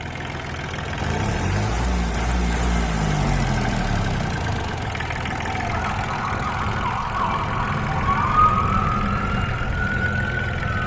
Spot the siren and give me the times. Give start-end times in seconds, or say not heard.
5.4-10.8.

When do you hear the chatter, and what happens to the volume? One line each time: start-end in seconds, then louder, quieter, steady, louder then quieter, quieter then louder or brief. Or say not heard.
not heard.